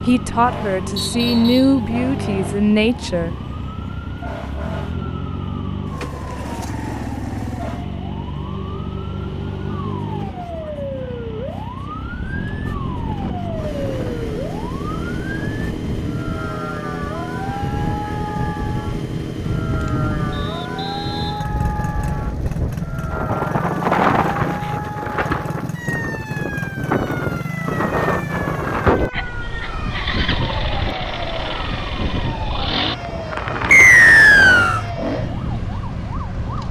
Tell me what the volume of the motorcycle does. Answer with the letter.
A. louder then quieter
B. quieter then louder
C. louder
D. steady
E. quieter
D.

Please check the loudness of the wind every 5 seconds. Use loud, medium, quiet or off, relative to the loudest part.
off, off, medium, medium, loud, loud, medium, medium.